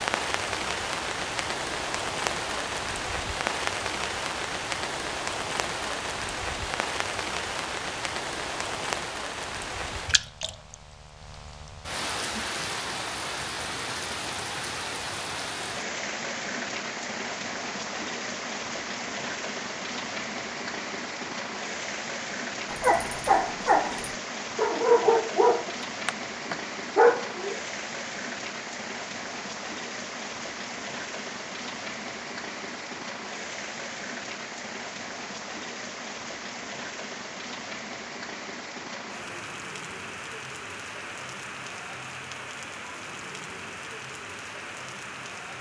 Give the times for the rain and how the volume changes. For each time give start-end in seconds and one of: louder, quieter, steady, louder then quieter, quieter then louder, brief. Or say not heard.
0.0-45.5 quieter.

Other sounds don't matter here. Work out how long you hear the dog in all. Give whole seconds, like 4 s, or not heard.
5 s.